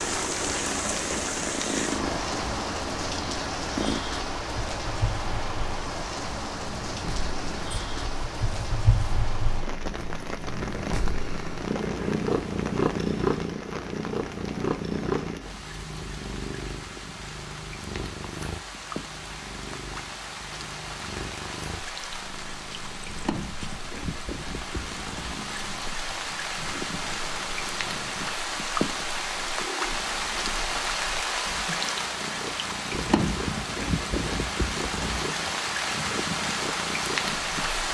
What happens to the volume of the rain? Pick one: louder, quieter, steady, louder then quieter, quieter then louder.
quieter then louder.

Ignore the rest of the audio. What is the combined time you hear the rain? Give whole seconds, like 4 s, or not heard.
38 s.